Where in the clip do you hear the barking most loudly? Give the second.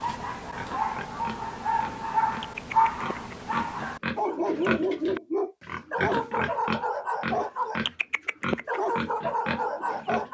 3 s.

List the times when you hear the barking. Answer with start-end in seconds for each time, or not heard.
0.0-7.8, 8.7-10.2.